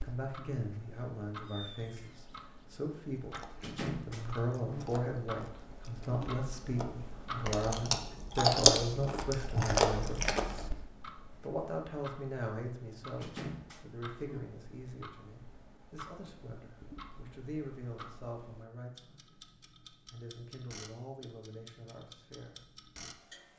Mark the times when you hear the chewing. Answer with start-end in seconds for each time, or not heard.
3.1-10.7.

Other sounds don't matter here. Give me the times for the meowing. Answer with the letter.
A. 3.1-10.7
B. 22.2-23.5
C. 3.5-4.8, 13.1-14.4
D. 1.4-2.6
D.